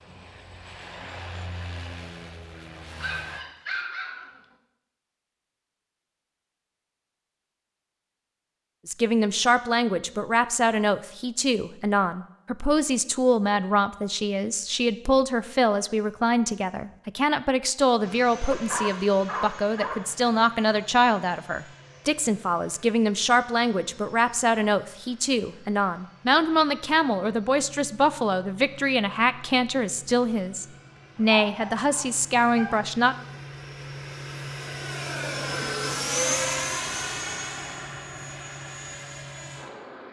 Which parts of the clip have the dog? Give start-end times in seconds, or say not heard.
2.5-4.4, 18.5-20.2, 31.1-33.1.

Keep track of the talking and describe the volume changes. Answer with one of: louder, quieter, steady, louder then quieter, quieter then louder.
steady.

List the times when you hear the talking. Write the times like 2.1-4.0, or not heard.
8.8-33.1.